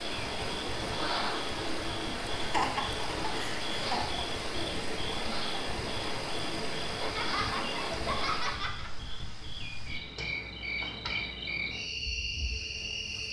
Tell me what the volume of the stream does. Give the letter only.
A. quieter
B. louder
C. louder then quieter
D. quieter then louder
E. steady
E.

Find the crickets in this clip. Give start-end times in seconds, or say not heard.
0.0-13.2.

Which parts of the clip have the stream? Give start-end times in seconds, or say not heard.
0.0-8.7.